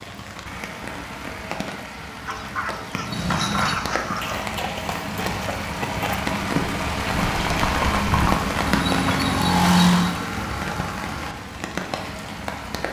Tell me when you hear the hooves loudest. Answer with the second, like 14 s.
10 s.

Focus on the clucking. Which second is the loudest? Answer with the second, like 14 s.
4 s.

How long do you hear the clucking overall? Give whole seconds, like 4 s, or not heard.
2 s.